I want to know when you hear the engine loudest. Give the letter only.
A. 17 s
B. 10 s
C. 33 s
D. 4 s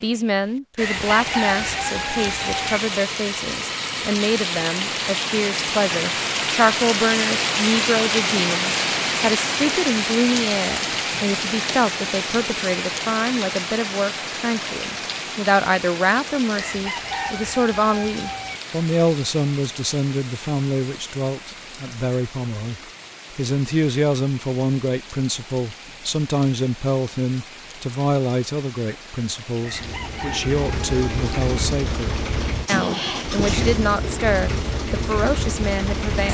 C.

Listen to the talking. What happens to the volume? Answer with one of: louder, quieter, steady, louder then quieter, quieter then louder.
steady.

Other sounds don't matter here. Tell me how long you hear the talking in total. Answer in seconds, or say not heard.
36 s.